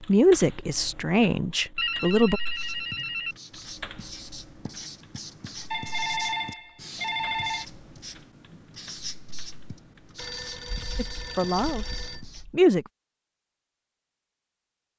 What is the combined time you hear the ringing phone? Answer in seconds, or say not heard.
6 s.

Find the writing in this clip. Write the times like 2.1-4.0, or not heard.
2.5-12.4.